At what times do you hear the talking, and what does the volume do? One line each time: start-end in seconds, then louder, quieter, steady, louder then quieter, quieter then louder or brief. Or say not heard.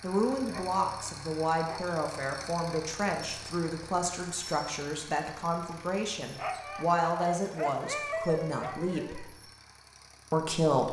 0.0-9.2 steady
10.3-10.8 brief.